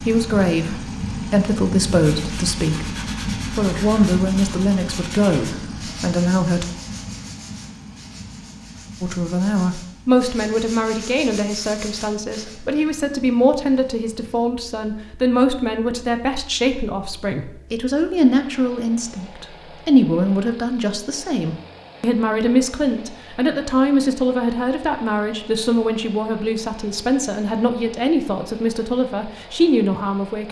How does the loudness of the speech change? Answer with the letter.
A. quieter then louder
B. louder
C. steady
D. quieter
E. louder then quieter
C.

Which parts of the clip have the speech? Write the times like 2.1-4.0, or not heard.
0.0-6.7, 9.0-30.4.